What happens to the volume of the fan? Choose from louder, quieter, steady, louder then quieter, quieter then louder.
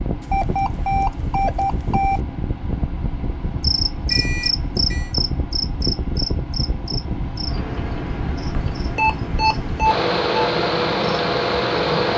louder.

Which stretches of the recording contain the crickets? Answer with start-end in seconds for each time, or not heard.
3.6-12.1.